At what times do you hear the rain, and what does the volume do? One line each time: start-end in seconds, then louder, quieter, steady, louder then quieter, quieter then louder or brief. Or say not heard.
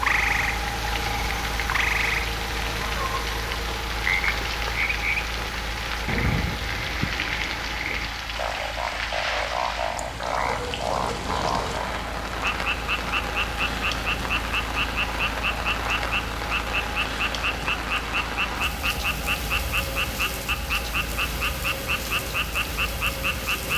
0.0-23.7 steady.